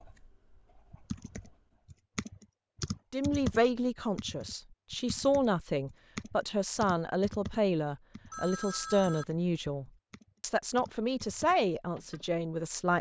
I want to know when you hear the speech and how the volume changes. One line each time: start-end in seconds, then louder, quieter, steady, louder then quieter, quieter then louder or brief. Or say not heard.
3.1-12.9 steady.